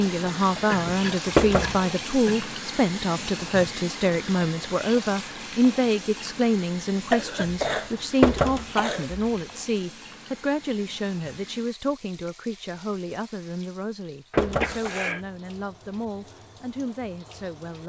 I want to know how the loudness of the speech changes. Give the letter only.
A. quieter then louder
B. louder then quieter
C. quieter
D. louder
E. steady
C.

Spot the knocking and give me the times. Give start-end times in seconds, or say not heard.
1.4-1.9, 8.2-8.7, 14.3-14.8.